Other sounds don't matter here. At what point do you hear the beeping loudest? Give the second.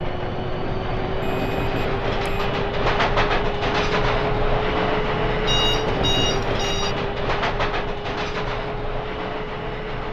6 s.